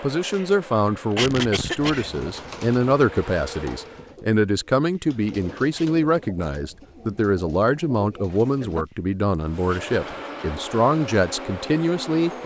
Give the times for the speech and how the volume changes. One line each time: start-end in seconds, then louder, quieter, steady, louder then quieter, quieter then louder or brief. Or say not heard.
0.0-12.4 steady.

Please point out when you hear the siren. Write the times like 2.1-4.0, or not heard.
not heard.